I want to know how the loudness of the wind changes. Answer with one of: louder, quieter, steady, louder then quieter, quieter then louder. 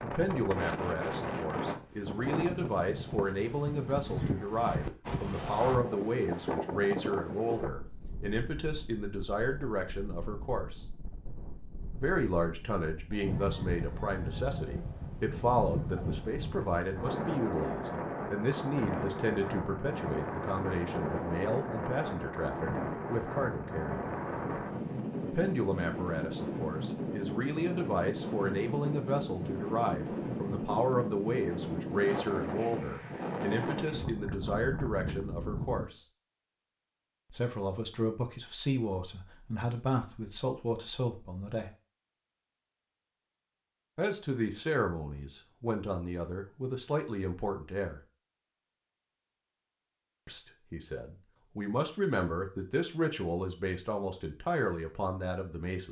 quieter then louder.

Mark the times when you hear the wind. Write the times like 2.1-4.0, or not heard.
0.0-35.9.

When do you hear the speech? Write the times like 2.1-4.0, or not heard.
0.0-10.8, 12.0-24.1, 25.2-36.0, 37.3-41.7, 44.0-48.0, 50.2-55.8.